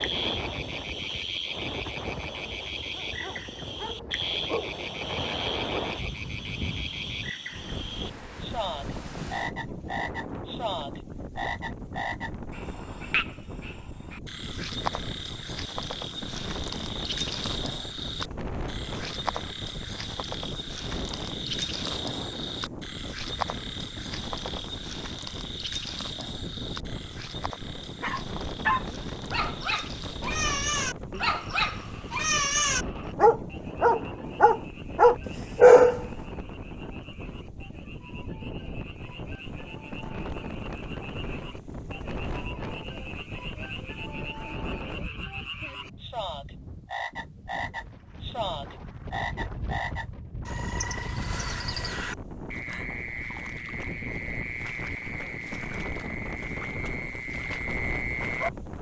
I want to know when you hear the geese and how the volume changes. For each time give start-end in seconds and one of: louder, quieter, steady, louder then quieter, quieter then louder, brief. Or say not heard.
not heard.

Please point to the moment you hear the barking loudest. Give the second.
36 s.